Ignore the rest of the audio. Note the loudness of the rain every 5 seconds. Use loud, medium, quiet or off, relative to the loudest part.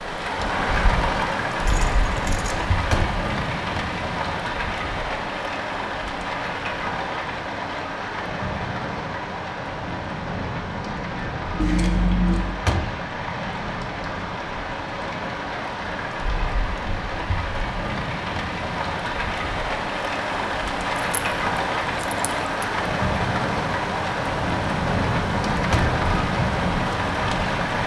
loud, medium, medium, medium, loud, loud.